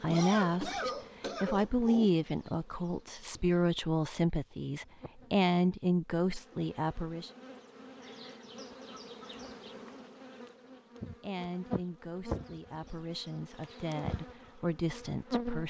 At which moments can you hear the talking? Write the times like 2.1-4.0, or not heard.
0.0-7.3, 11.2-15.6.